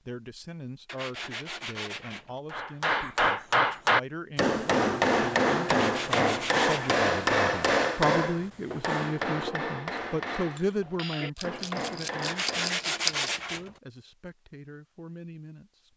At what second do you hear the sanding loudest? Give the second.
13 s.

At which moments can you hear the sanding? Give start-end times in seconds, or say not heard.
0.8-2.4, 5.7-7.0, 12.2-13.7.